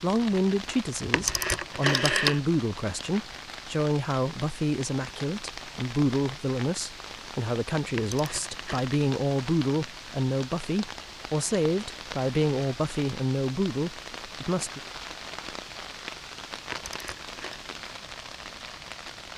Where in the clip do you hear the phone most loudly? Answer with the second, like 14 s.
2 s.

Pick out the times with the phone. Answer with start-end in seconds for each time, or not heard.
1.1-2.4, 8.0-8.8, 16.7-17.6.